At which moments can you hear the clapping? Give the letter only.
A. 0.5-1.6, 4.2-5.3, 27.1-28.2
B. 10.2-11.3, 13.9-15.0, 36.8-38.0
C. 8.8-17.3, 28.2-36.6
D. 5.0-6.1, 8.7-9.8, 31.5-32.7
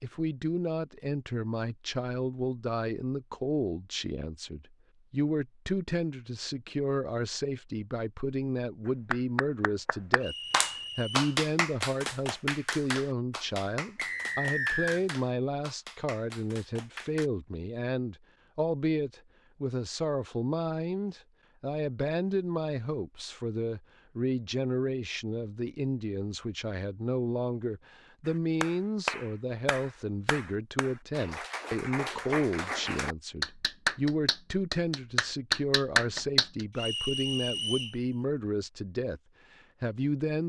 C.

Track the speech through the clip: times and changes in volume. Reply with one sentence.
The speech can be heard from 0.0 to 10.3 s, at a steady volume; from 10.9 to 39.2 s, at a steady volume; and briefly from 39.8 to 40.4 s.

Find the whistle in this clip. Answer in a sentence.
You can hear the whistle from 10.2 to 11.3 s, from 13.9 to 15.0 s and from 36.8 to 38.0 s.